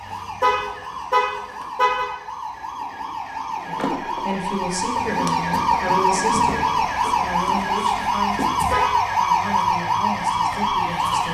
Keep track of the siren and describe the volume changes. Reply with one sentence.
The volume of the siren goes up.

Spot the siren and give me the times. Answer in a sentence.
The siren can be heard from 0.0 to 11.2 s.